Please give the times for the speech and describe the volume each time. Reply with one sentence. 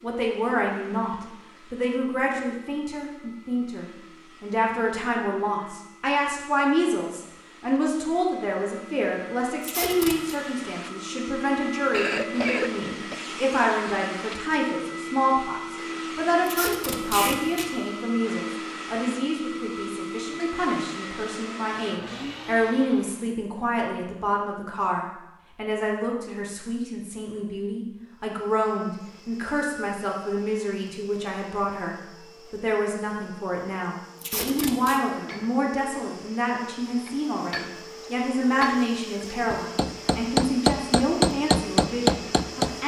The speech can be heard from 0.0 to 42.8 s, at a steady volume.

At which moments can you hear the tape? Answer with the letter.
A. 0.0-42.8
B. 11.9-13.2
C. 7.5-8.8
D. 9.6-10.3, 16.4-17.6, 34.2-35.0
D.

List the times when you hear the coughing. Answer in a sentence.
You can hear the coughing from 11.9 to 13.2 s.